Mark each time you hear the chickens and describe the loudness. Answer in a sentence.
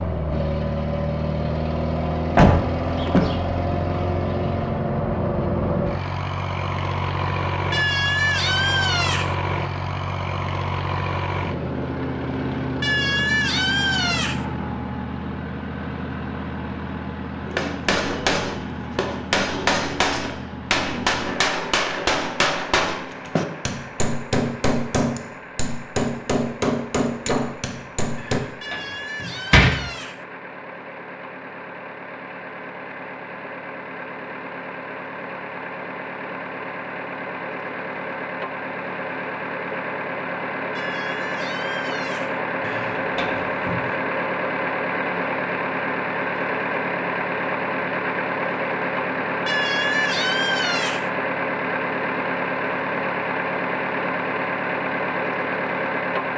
You can't hear the chickens here.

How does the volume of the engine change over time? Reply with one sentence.
The loudness of the engine goes down, then up.